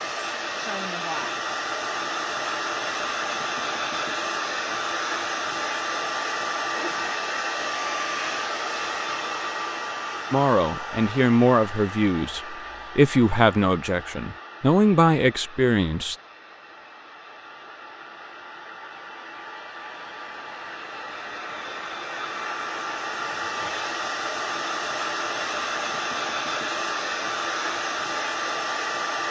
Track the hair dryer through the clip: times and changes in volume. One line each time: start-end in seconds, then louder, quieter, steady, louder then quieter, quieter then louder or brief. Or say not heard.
0.0-29.2 quieter then louder.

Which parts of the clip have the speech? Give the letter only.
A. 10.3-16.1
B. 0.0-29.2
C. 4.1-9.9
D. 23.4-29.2
A.